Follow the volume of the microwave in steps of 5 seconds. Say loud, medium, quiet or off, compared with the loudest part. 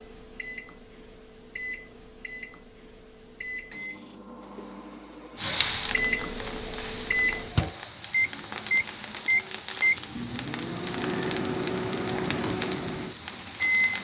quiet, loud, loud.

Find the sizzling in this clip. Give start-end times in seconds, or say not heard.
5.3-13.9.